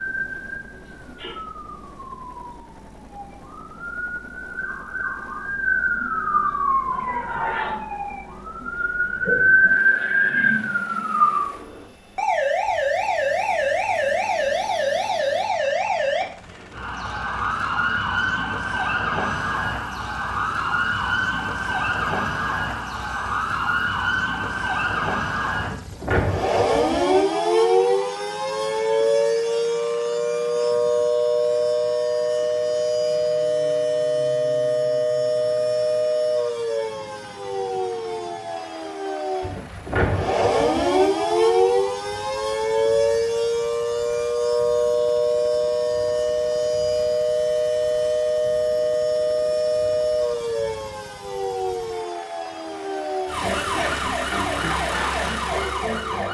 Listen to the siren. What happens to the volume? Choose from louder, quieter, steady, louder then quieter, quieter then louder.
steady.